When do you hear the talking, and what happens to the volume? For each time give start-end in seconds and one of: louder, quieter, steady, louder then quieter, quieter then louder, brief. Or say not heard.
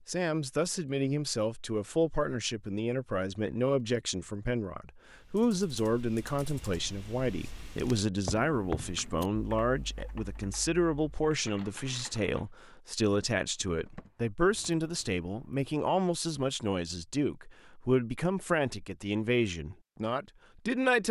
0.1-21.0 steady.